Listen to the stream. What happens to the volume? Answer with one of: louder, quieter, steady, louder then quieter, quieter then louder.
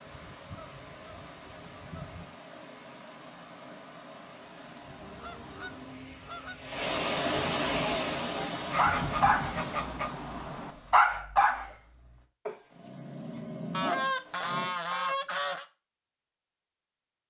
louder then quieter.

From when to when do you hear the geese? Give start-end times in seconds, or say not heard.
0.1-2.4, 5.0-6.8, 8.7-10.8, 13.7-15.7.